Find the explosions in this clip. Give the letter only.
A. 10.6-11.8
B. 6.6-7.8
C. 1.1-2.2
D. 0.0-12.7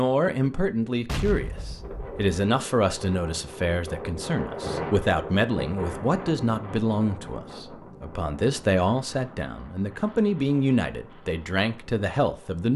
C.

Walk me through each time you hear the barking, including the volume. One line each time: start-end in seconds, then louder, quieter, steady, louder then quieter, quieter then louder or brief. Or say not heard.
not heard.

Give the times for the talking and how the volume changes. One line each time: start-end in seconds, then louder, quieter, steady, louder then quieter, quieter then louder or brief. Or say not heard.
0.0-12.7 steady.